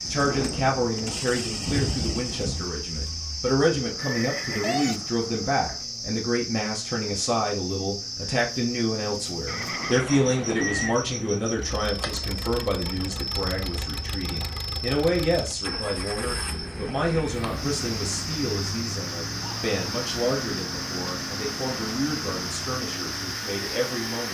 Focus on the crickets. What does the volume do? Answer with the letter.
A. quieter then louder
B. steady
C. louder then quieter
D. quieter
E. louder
B.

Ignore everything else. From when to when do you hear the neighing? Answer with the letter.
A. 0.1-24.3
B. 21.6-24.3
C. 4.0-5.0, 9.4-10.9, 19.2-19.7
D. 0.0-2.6
C.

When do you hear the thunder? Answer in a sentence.
The thunder can be heard from 0.0 to 2.6 s.